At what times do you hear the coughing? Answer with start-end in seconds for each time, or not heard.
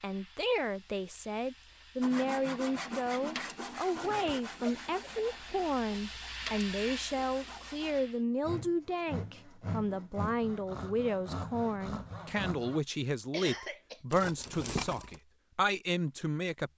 4.0-5.3, 13.3-14.0.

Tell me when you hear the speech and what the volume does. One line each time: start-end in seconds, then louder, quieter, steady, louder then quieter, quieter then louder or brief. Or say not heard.
0.0-16.7 steady.